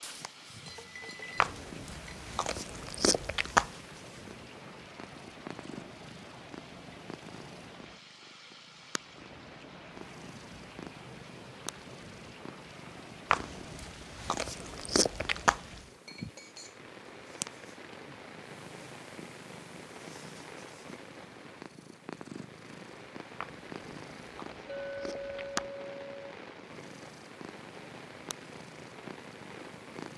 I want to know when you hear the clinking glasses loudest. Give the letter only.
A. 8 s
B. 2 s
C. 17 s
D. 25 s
D.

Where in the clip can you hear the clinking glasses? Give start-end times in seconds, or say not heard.
0.7-2.3, 16.1-16.8, 24.6-26.4.